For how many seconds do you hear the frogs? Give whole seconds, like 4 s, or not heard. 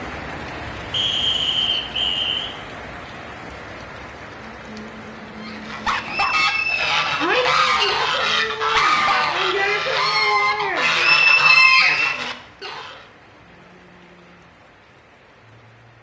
not heard.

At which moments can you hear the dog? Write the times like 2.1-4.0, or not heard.
5.8-6.5, 8.7-9.3.